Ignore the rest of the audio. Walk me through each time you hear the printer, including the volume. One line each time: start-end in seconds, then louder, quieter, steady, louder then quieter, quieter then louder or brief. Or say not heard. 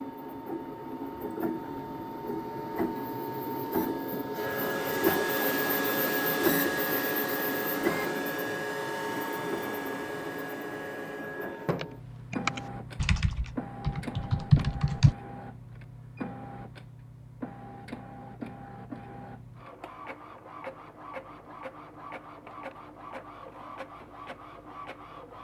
0.0-25.3 quieter.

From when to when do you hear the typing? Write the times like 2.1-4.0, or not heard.
11.6-15.2.